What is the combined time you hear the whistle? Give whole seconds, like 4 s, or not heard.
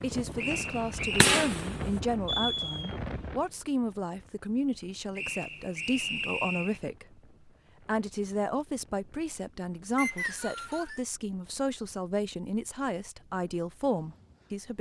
4 s.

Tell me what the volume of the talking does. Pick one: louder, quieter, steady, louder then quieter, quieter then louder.
steady.